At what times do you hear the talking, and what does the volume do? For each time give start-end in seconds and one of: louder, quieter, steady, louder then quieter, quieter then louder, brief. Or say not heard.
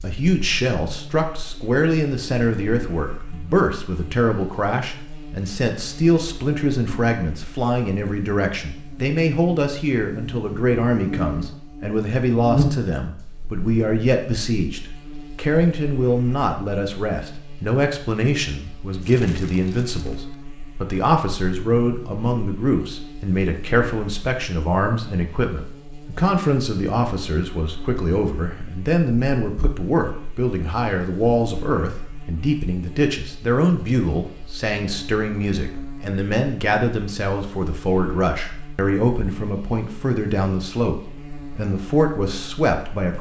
0.0-43.1 steady.